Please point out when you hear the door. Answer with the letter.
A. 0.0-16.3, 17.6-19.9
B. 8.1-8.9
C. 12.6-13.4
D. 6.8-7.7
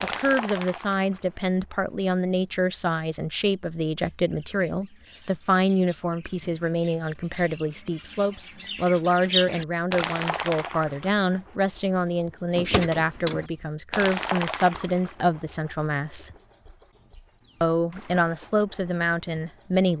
C.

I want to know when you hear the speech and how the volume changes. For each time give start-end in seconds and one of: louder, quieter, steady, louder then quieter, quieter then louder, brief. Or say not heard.
0.0-16.3 steady
17.6-19.9 brief.